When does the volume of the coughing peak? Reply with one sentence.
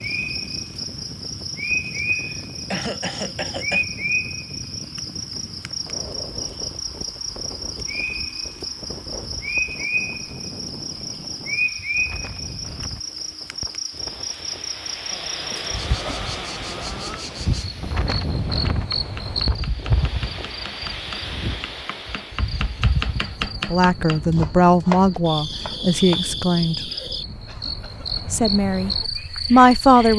The volume of the coughing peaks at 3 seconds.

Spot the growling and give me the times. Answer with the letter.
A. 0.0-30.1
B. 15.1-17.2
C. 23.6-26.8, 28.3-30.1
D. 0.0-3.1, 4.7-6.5
B.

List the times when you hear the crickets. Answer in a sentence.
The crickets can be heard from 0.0 to 30.1 s.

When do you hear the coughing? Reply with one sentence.
The coughing can be heard from 1.9 to 3.9 s, from 15.4 to 16.2 s and from 27.4 to 28.2 s.